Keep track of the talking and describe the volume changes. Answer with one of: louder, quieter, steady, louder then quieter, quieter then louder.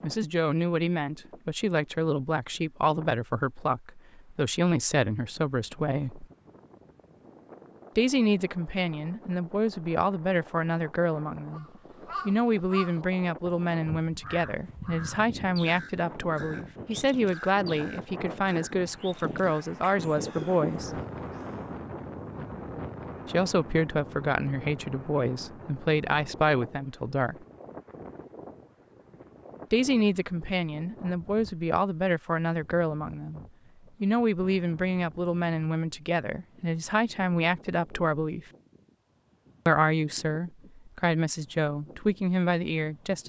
steady.